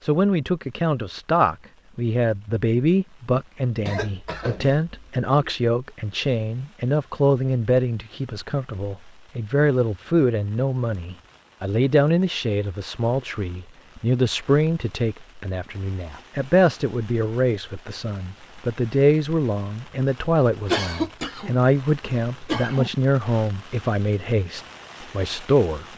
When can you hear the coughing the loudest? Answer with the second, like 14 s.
21 s.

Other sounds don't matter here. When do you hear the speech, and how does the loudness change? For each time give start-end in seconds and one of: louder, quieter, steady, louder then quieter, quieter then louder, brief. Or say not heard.
0.0-25.9 steady.